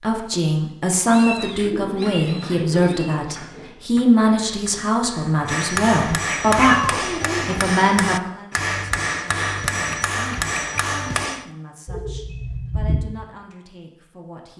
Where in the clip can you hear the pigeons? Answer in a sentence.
You can hear the pigeons from 1.6 to 3.8 s and from 11.8 to 13.0 s.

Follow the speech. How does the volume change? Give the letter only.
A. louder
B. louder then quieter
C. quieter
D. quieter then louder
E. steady
C.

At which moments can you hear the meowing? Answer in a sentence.
The meowing can be heard from 1.1 to 3.2 s, from 6.2 to 7.8 s and from 9.8 to 10.8 s.